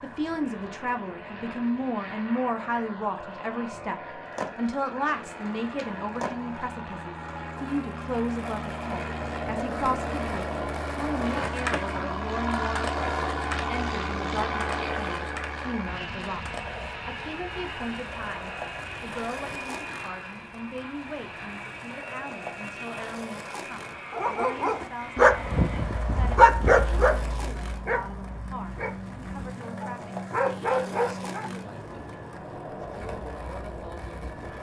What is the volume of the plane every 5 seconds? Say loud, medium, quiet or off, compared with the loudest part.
medium, medium, loud, medium, medium, medium, medium.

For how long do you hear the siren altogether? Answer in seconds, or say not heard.
not heard.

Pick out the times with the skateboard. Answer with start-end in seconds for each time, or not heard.
4.2-34.5.